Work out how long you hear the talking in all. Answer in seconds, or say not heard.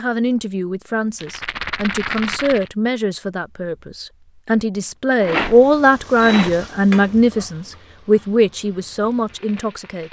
10 s.